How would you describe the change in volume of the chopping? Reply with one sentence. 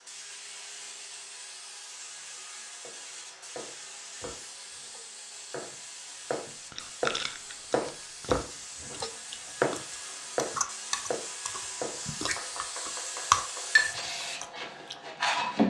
The loudness of the chopping goes up, then down.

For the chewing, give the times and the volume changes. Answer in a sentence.
The chewing can be heard from 6.7 to 14.9 s, getting louder.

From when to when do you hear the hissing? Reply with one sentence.
You can hear the hissing from 0.0 to 15.6 s.